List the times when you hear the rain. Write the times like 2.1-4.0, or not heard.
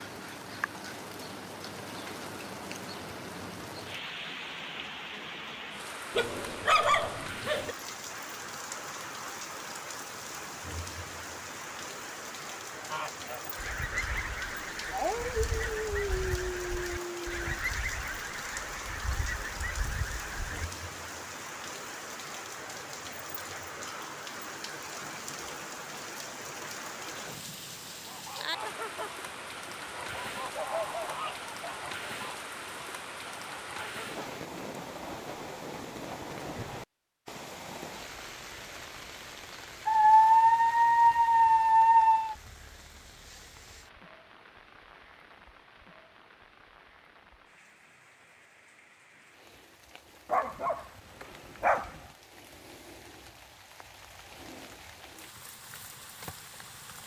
0.0-57.0.